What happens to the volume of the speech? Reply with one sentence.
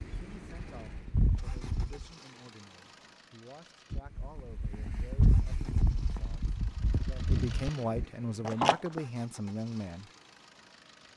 The volume of the speech goes up.